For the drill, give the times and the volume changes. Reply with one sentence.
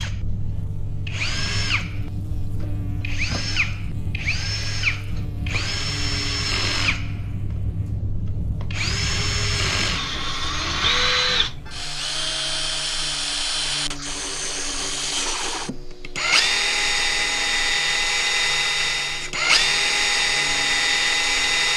You can hear the drill from 0.0 to 21.7 s, getting louder.